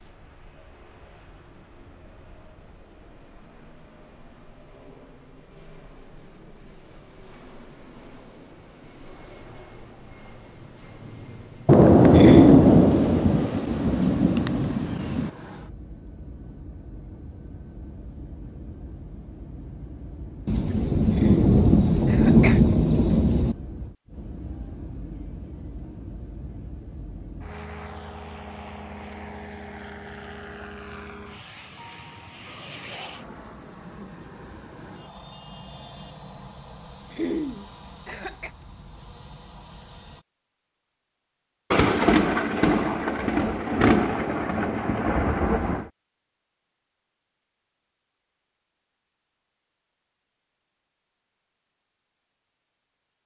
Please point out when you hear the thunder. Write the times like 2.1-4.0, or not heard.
11.7-15.3, 20.4-23.6, 41.7-45.9.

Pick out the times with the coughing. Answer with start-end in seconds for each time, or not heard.
12.2-12.7, 21.1-22.6, 37.1-38.5.